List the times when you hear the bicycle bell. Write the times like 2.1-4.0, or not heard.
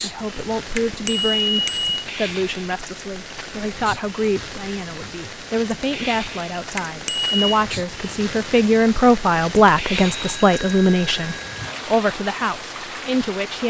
0.8-2.0, 6.8-7.4, 9.9-11.5.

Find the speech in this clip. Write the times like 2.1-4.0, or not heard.
0.0-13.6.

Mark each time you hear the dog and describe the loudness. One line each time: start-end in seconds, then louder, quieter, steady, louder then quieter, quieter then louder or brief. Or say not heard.
not heard.